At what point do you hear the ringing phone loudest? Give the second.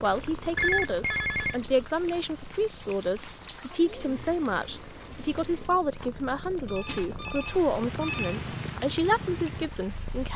1 s.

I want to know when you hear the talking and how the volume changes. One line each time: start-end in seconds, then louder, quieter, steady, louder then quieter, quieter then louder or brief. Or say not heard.
0.0-10.3 steady.